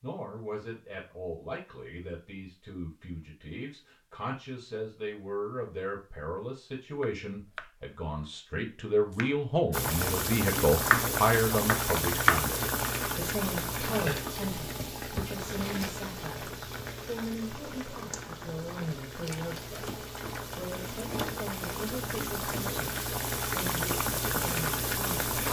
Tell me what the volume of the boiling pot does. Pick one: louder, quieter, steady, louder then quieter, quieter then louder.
quieter then louder.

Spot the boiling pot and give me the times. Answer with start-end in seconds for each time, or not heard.
9.7-25.4.